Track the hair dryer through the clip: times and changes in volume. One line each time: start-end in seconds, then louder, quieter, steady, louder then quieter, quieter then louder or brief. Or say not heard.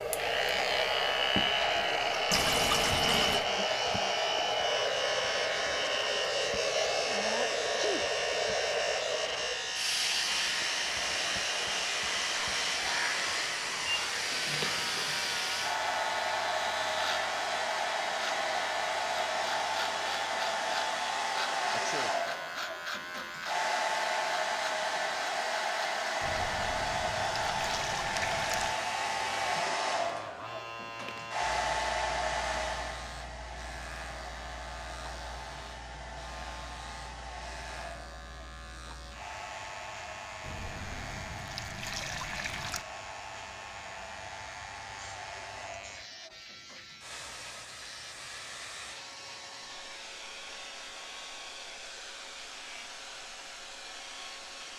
0.0-54.7 quieter.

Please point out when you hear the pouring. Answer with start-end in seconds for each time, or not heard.
2.3-3.5, 26.2-28.8, 40.4-42.9.